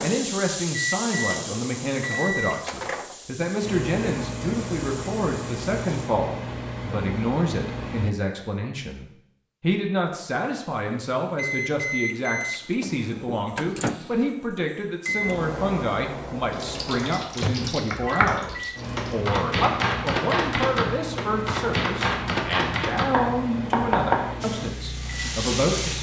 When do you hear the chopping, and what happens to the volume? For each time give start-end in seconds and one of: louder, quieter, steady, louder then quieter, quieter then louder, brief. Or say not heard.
17.9-24.2 steady.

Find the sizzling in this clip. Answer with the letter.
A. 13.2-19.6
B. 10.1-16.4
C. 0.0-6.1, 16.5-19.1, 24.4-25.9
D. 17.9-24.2
C.